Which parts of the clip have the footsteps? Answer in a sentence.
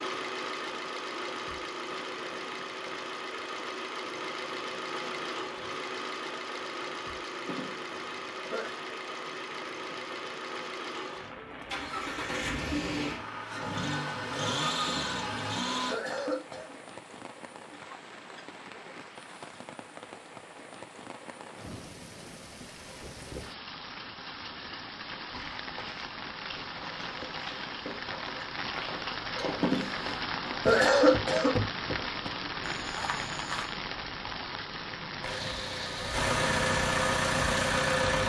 You can hear the footsteps from 25.3 to 33.8 s.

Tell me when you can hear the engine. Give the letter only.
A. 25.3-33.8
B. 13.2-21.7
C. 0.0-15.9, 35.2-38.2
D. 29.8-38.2
C.